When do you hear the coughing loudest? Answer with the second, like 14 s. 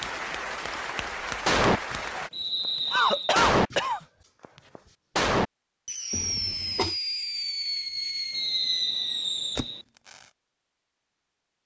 3 s.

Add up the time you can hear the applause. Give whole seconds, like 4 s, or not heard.
2 s.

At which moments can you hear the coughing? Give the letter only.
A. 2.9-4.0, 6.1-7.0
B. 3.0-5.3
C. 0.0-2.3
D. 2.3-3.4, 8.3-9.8
A.